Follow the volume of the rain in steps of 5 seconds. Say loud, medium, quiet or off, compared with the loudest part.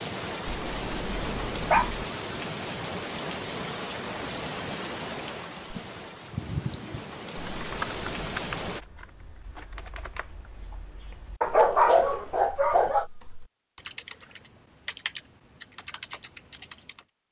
loud, loud, off, off.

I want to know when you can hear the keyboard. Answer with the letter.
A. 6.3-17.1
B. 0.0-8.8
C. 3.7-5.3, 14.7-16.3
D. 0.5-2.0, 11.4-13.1
A.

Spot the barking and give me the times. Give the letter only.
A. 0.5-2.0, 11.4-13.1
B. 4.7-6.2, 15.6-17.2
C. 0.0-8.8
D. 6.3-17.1
A.